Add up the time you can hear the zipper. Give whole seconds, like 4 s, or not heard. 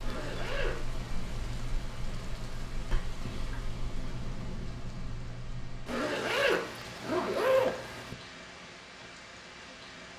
3 s.